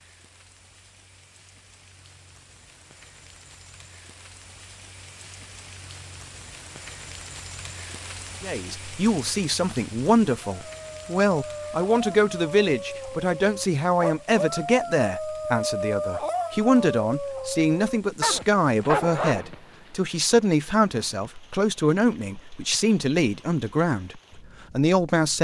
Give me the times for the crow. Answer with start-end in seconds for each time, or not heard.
not heard.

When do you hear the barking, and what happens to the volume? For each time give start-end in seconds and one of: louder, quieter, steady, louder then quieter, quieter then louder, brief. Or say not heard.
10.4-19.6 louder.